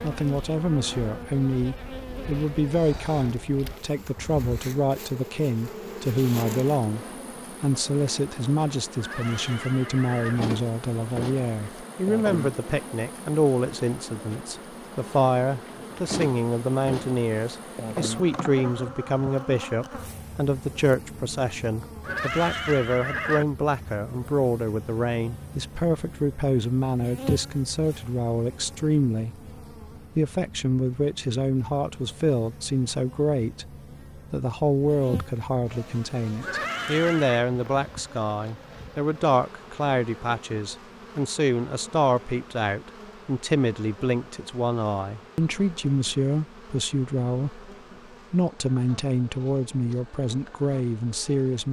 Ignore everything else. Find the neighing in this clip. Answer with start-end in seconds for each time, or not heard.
8.9-10.4, 22.0-23.4, 36.4-37.5.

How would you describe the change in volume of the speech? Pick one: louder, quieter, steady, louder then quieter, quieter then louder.
steady.